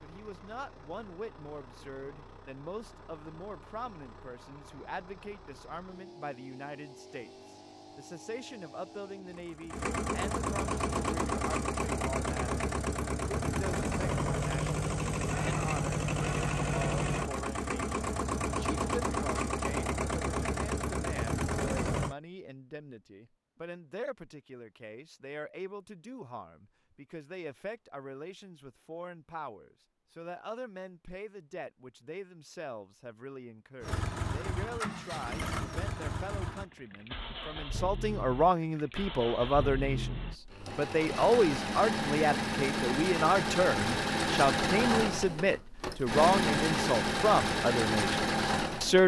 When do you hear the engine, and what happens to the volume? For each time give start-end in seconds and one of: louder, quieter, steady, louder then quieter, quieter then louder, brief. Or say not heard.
0.0-22.1 louder
33.8-49.0 louder.